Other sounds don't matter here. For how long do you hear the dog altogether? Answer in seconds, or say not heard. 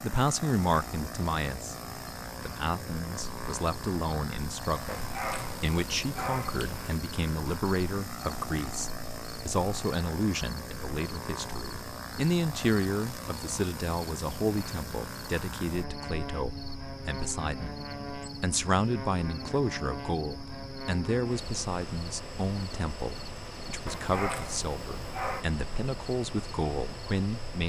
4 s.